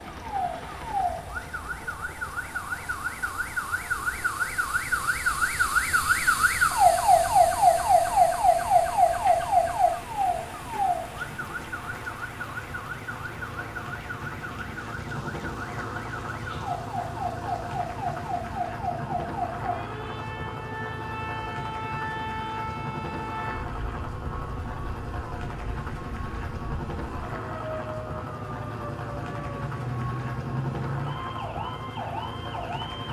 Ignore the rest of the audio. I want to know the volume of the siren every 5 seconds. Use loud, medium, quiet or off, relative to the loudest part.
medium, loud, quiet, quiet, quiet, quiet, quiet.